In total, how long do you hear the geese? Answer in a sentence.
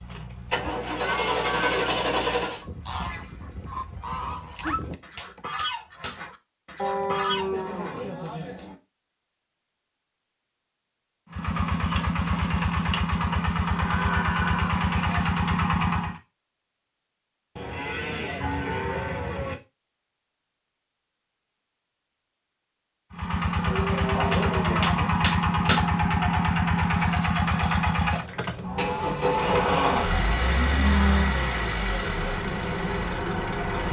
You can hear the geese for 6 seconds altogether.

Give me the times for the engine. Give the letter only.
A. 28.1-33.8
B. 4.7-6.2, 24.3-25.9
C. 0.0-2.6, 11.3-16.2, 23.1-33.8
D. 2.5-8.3
C.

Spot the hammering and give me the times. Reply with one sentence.
The hammering can be heard from 4.7 to 6.2 s and from 24.3 to 25.9 s.